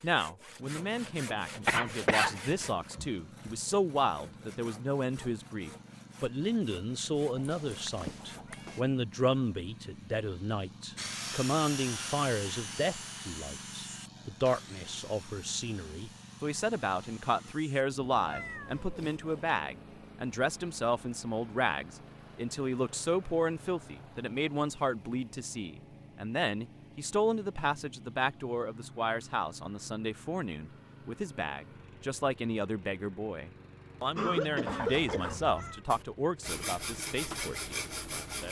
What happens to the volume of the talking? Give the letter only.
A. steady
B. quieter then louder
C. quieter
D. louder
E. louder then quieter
A.